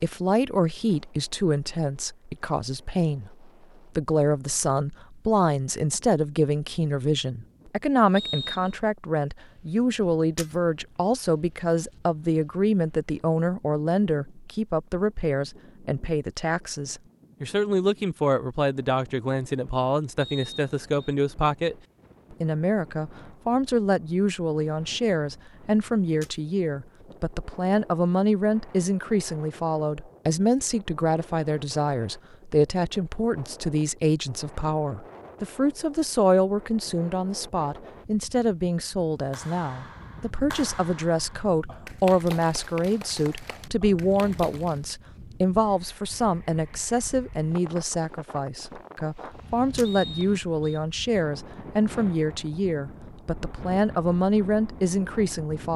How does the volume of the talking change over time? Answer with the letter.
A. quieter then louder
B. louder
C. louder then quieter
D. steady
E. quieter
D.